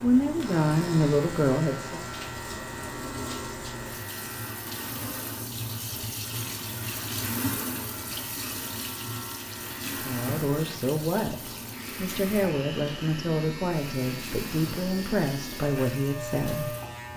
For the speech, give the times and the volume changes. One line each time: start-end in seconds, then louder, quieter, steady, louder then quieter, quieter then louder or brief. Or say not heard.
0.0-2.0 brief
10.1-17.1 steady.